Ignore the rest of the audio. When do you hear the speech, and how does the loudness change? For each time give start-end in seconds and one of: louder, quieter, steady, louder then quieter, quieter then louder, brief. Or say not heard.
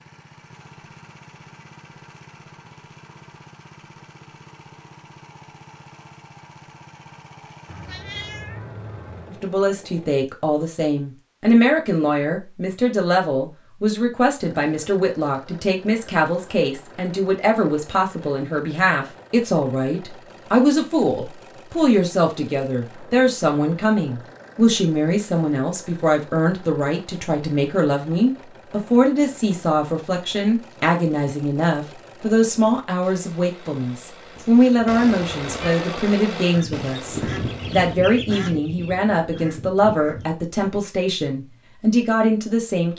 9.3-42.9 steady.